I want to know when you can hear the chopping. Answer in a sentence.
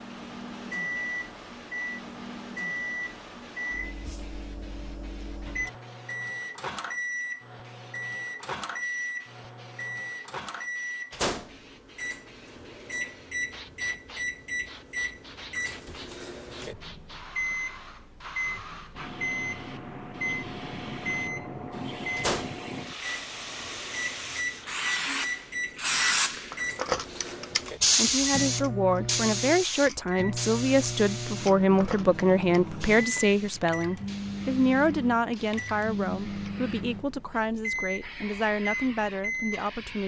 The chopping can't be heard in this clip.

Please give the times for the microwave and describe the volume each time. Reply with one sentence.
The microwave can be heard from 0.0 to 40.0 s, at a steady volume.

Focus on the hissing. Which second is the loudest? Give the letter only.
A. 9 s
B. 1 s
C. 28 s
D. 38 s
C.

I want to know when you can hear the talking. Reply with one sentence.
The talking can be heard from 27.9 to 40.0 s.